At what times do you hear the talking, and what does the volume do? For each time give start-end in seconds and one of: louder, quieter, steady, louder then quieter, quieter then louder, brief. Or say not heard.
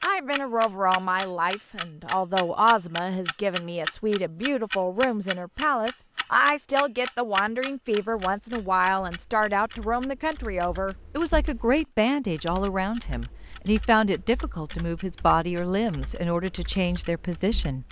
0.0-17.8 steady.